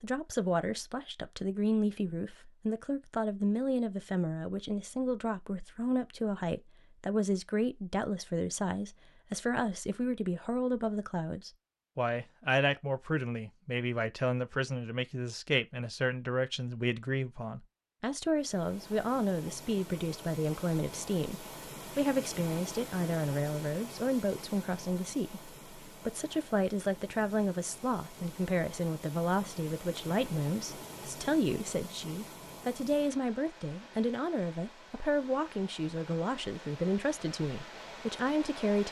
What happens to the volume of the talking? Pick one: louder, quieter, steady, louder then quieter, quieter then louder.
steady.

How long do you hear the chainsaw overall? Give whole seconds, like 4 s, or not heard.
not heard.